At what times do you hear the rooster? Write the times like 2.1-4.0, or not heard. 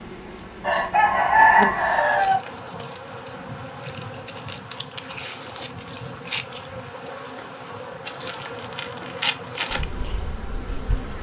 0.6-2.4.